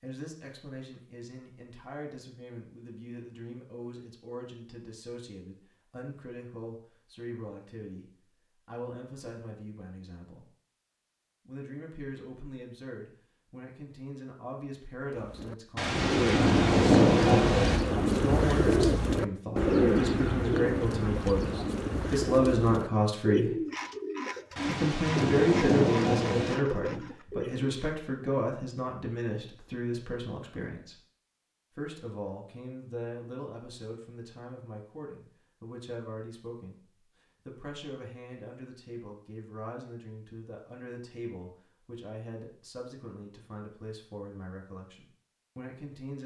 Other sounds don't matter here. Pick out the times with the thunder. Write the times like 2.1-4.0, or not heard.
15.8-17.8, 24.6-26.6.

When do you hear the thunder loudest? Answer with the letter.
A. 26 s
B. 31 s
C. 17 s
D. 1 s
C.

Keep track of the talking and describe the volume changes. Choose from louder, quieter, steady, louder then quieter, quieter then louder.
louder then quieter.